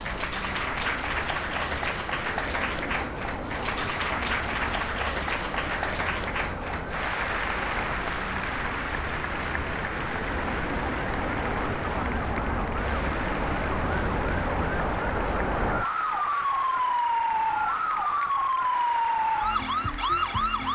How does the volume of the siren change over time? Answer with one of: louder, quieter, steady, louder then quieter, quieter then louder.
louder.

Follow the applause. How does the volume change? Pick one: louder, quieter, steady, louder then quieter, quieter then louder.
quieter.